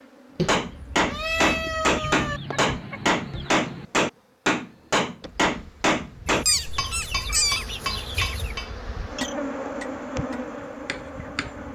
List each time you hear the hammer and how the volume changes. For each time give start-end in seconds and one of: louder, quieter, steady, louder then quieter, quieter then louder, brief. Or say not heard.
0.5-11.6 quieter.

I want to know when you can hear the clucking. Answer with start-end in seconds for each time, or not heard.
1.9-3.9, 6.2-8.6.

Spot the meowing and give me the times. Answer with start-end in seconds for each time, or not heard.
0.3-2.4, 6.5-7.7.